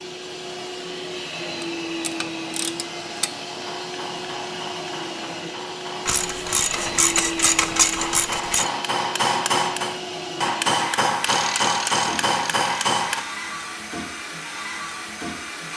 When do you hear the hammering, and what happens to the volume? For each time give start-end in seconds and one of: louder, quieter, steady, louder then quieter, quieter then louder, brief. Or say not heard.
3.5-13.2 louder.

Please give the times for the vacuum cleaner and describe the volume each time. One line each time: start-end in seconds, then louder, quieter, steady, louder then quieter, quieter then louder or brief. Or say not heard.
0.0-15.7 steady.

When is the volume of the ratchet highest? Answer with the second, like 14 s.
8 s.